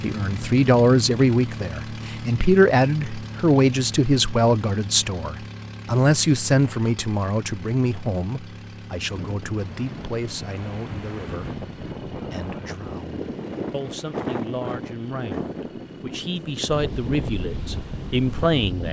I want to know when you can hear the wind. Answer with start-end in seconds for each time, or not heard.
9.0-18.8.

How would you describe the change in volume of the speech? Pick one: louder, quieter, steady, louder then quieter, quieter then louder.
quieter then louder.